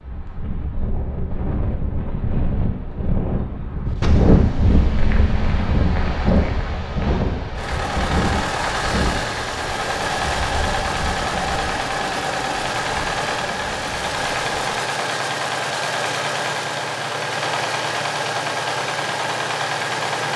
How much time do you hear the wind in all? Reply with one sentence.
You can hear the wind for 15 seconds altogether.